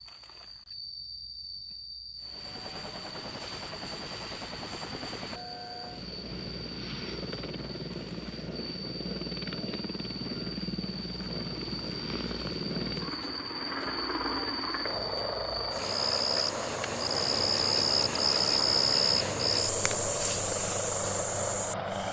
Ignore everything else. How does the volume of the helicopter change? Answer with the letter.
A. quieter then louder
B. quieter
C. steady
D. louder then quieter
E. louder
E.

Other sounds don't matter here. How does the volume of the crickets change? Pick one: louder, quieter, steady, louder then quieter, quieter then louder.
louder.